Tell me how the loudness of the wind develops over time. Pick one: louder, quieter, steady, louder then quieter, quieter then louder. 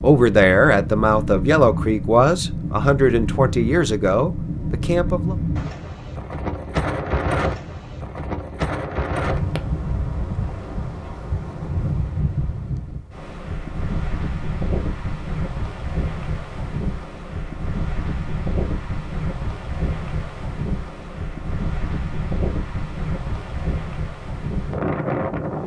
steady.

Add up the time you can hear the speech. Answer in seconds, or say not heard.
5 s.